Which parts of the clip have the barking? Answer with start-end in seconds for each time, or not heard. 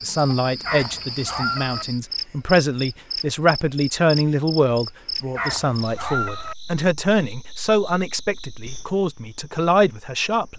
0.6-1.9, 5.3-6.5.